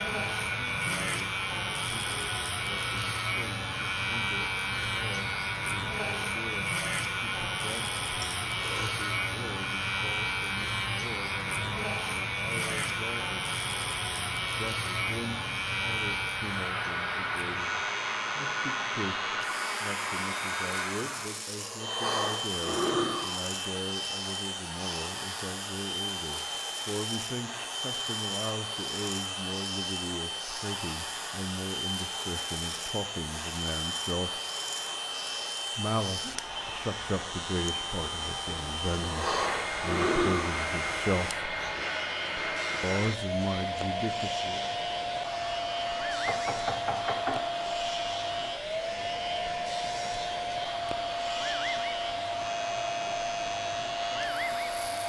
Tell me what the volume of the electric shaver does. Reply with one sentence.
The volume of the electric shaver goes down.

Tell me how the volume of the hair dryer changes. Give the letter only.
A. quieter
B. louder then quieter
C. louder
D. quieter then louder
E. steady
C.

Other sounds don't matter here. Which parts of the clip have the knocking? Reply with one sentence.
You can hear the knocking from 46.2 to 47.5 s.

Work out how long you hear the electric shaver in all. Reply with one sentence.
You can hear the electric shaver for 55 seconds altogether.